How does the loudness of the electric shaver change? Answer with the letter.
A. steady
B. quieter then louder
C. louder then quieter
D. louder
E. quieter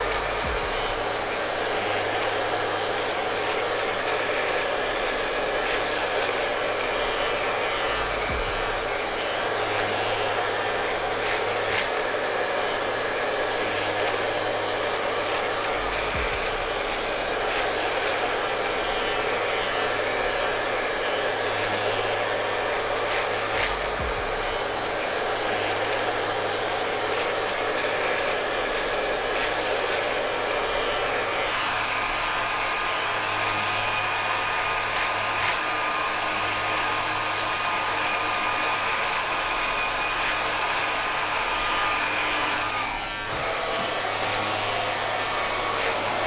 A.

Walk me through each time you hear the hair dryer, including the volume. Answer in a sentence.
You can hear the hair dryer from 0.0 to 46.2 s, at a steady volume.